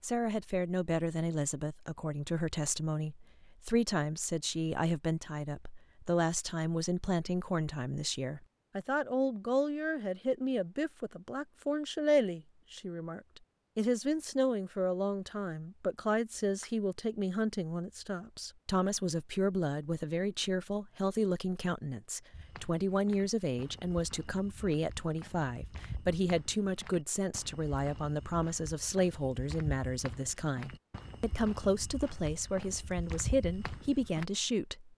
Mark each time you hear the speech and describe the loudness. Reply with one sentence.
You can hear the speech from 0.0 to 34.9 s, at a steady volume.